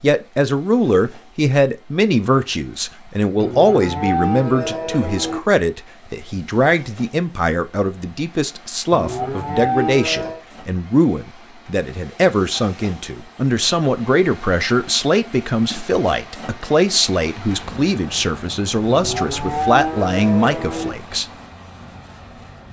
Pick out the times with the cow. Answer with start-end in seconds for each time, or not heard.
3.4-5.4, 8.9-10.4, 18.9-20.9.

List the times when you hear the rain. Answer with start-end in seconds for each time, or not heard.
not heard.